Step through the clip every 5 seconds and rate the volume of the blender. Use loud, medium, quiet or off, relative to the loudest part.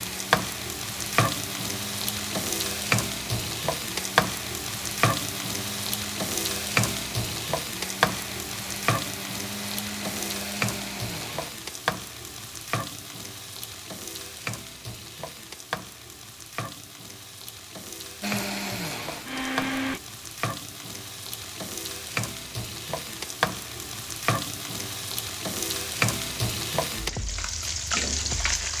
medium, medium, medium, loud, off, off.